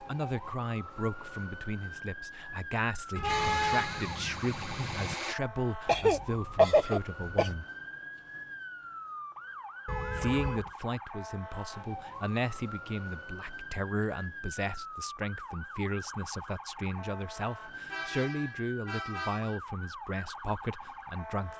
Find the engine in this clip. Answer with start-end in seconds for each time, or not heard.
3.2-5.3.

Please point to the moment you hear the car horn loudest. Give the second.
4 s.